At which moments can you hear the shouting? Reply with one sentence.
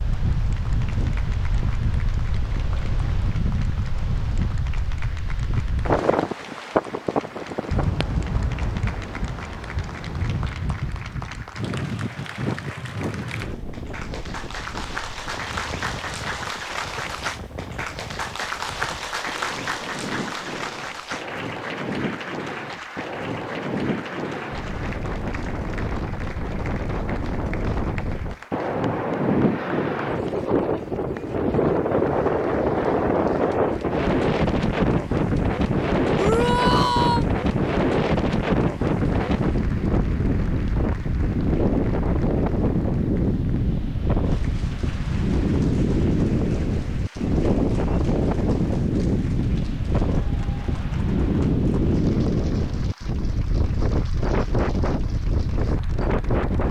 The shouting can be heard from 36.1 to 37.2 s.